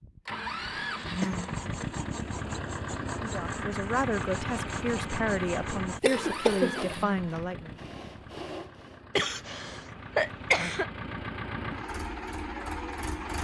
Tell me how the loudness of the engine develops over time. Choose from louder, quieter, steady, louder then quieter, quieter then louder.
quieter then louder.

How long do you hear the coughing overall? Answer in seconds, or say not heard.
4 s.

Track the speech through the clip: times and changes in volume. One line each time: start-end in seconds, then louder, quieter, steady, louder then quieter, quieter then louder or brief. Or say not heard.
3.1-7.8 steady.